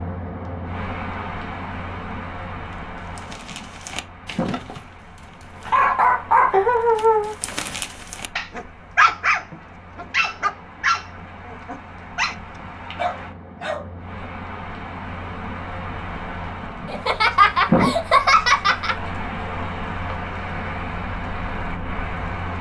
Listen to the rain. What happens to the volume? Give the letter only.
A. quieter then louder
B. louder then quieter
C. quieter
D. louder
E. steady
A.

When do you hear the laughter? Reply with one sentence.
You can hear the laughter from 6.5 to 7.3 s and from 16.9 to 18.9 s.